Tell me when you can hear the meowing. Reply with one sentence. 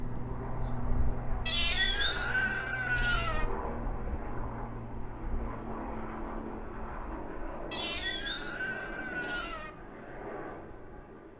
The meowing can be heard from 1.4 to 3.5 s and from 7.7 to 9.7 s.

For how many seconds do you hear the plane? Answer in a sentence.
You can hear the plane for 11 seconds altogether.